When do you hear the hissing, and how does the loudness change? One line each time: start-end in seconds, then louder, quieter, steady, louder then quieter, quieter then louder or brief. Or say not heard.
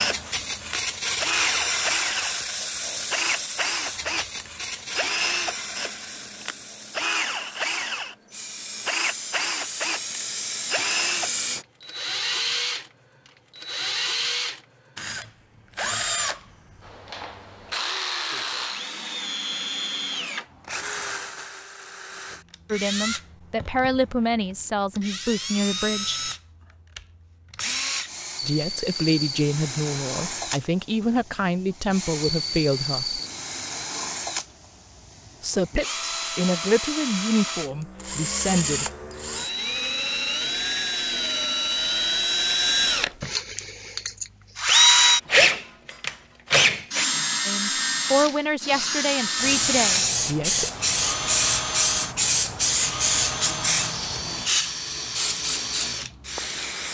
0.0-11.7 quieter then louder
49.4-56.8 quieter.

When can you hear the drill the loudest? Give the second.
45 s.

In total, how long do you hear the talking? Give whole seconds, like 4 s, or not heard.
15 s.